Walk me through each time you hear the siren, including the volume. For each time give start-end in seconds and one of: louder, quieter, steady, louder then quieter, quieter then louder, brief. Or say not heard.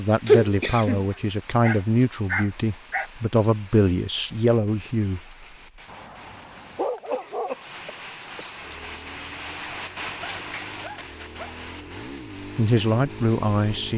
not heard.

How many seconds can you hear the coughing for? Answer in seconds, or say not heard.
2 s.